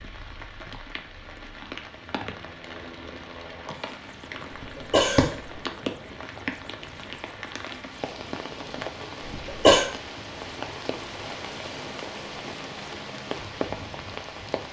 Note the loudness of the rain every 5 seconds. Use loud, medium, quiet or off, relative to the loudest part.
medium, loud, loud.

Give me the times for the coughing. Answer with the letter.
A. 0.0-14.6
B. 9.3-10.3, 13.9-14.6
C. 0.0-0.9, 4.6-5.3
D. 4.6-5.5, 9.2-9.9
D.